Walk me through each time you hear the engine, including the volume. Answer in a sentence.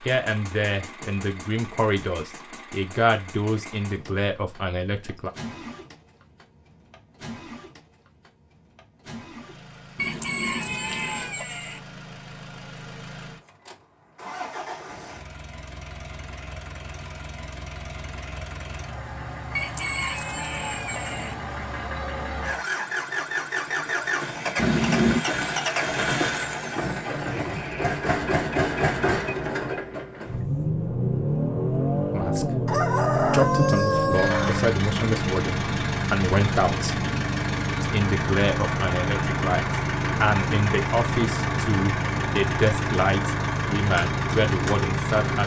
The engine can be heard from 0.0 to 45.4 s, getting louder.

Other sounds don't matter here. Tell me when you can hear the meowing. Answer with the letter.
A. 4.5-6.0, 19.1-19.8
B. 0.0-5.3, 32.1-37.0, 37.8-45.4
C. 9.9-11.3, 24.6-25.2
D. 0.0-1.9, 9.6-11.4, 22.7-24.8
C.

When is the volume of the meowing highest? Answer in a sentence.
The volume of the meowing peaks at 25 seconds.